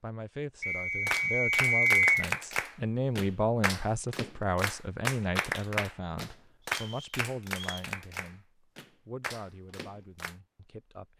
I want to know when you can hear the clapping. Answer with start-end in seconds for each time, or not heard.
1.1-10.3.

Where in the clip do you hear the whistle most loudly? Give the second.
2 s.